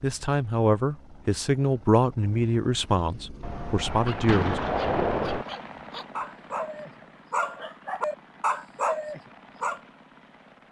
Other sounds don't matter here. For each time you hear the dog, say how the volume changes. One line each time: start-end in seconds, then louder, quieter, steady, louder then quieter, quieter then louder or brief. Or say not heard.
3.8-9.8 louder.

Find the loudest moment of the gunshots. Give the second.
5 s.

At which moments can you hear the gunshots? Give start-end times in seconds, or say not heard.
3.4-5.5.